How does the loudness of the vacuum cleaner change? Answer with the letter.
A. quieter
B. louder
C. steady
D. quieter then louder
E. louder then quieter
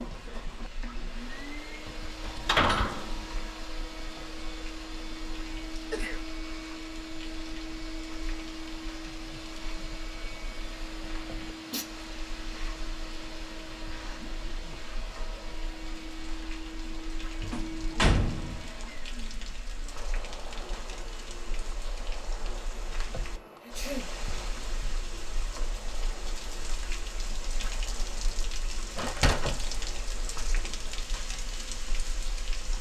A.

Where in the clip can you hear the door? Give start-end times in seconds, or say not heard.
2.2-3.5, 17.4-18.6, 28.9-29.6.